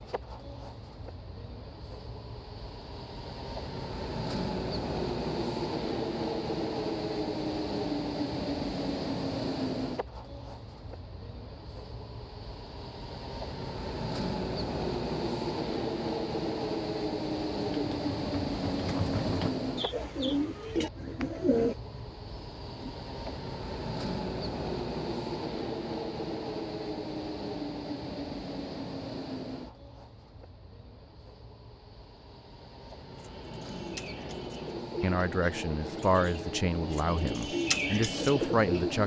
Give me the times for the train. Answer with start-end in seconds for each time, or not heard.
0.0-39.0.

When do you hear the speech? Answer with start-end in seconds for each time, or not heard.
35.0-39.0.